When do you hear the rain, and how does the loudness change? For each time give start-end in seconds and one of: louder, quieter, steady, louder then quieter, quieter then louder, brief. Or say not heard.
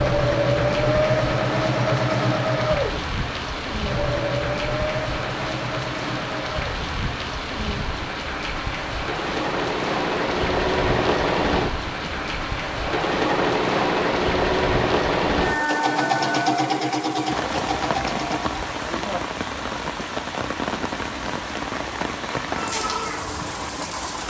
0.0-24.2 steady.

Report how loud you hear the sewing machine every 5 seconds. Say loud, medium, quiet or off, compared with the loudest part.
loud, medium, loud, loud, off.